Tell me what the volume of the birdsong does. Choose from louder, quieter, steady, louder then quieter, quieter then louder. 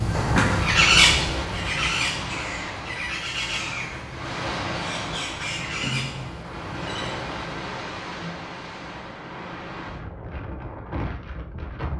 quieter.